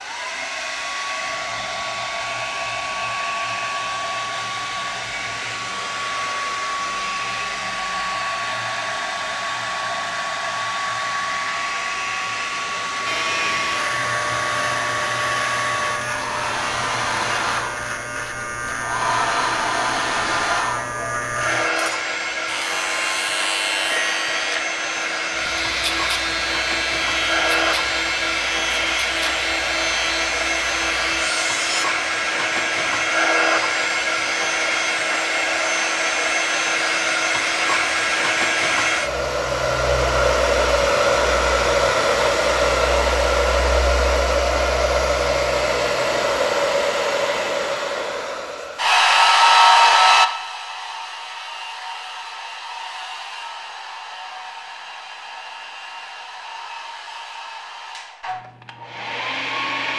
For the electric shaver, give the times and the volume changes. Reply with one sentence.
The electric shaver can be heard from 13.1 to 31.9 s, at a steady volume.